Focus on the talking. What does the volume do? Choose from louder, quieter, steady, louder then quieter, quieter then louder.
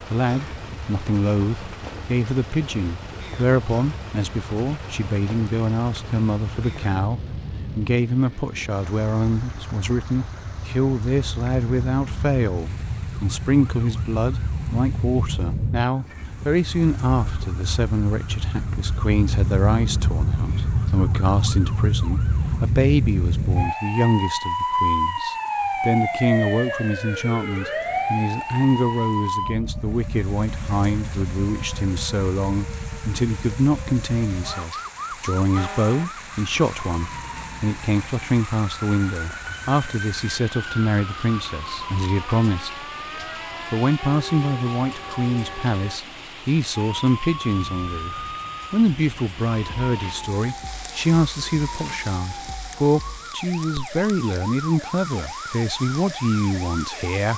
steady.